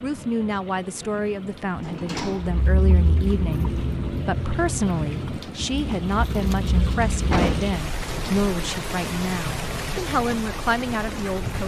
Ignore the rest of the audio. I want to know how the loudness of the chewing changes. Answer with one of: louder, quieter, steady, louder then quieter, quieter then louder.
quieter then louder.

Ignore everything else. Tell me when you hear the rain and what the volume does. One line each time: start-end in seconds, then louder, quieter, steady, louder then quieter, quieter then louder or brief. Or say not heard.
0.0-11.6 louder.